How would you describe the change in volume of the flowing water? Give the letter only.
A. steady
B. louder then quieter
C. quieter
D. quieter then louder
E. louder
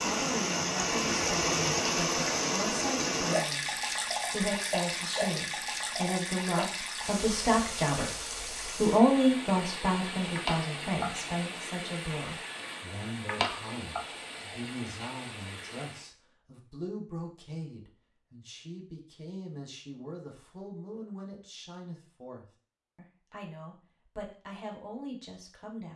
C.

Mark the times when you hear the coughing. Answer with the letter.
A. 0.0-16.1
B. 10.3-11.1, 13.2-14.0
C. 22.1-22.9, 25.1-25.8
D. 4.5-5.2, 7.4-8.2
B.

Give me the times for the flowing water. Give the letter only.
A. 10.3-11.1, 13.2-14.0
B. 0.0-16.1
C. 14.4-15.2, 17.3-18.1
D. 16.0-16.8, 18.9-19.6
B.